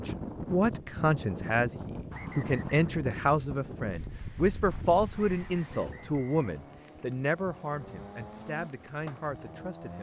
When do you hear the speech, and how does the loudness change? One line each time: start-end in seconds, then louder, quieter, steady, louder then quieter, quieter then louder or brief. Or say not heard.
0.0-9.9 quieter.